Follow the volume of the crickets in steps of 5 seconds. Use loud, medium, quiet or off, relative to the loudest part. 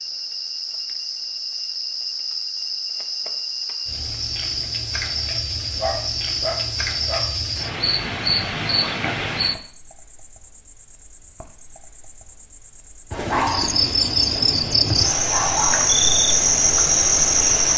medium, medium, medium, loud.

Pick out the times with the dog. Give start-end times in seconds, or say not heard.
5.3-7.3, 13.2-15.9.